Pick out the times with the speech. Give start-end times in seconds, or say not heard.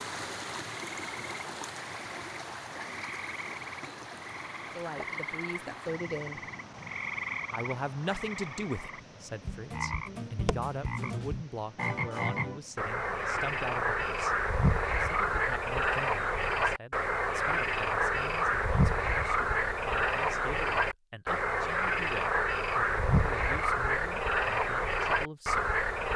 4.5-6.4, 7.5-14.3, 15.0-25.8.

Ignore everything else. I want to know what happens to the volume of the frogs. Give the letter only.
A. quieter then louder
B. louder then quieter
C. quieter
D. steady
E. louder
E.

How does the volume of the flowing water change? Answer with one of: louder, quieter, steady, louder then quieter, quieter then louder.
quieter.